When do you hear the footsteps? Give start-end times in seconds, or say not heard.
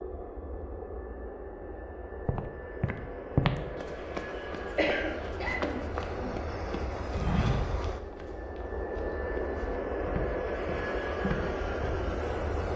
2.2-12.0.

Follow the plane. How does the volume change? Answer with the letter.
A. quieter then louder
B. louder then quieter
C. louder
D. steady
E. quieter
C.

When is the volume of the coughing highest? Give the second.
5 s.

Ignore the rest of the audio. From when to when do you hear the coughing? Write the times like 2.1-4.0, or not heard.
4.8-6.3.